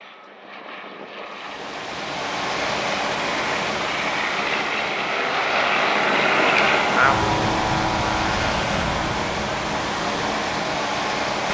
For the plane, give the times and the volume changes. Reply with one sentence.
You can hear the plane from 0.0 to 11.3 s, getting louder then quieter.